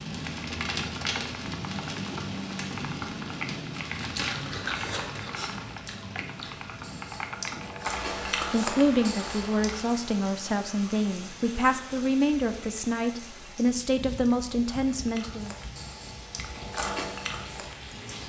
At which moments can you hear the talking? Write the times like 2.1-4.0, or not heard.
8.4-15.6.